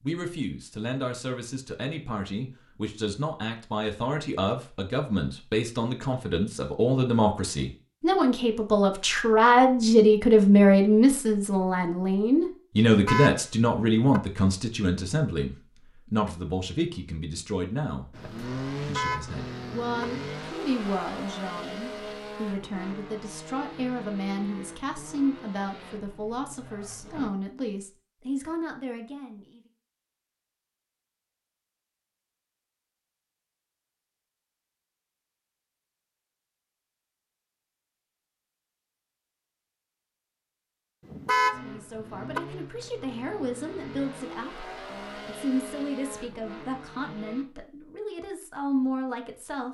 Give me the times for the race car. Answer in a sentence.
The race car can be heard from 18.1 to 27.3 s and from 41.5 to 47.5 s.